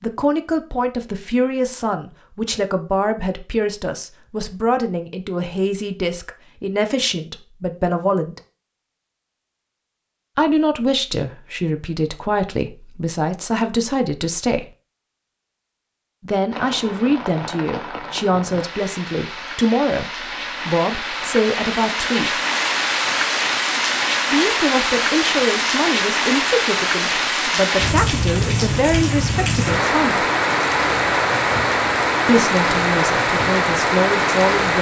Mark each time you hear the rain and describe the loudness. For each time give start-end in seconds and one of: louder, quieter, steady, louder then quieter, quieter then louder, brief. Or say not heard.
16.5-34.7 louder.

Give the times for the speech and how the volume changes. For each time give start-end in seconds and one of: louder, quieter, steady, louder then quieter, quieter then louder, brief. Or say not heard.
0.0-8.4 steady
10.3-14.7 steady
16.2-22.4 steady
24.3-30.2 steady
32.2-34.7 brief.